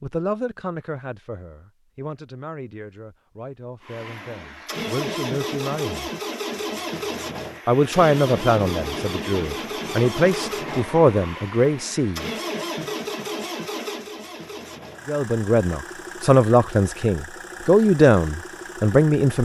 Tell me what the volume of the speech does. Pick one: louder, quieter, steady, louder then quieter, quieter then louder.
louder.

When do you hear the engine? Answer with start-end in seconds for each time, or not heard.
3.8-19.3.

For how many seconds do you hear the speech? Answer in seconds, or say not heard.
15 s.